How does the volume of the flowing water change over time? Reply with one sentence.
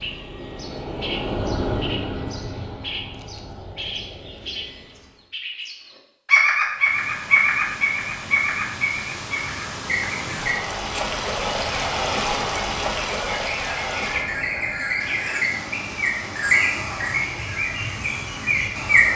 The loudness of the flowing water goes up, then down.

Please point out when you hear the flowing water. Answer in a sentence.
You can hear the flowing water from 6.8 to 19.1 s.